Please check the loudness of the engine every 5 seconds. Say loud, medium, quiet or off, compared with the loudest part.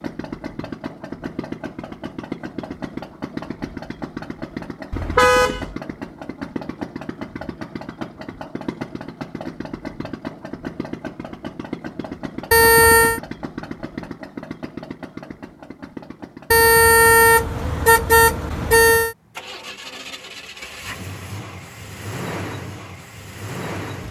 loud, loud, loud, medium, loud.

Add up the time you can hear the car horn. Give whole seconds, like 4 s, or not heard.
4 s.